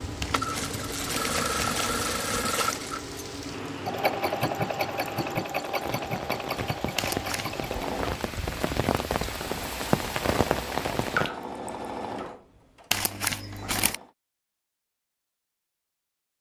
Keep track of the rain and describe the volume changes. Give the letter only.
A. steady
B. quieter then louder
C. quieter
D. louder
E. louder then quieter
D.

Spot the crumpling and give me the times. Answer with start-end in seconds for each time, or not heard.
0.2-2.9, 7.0-7.6, 12.9-13.9.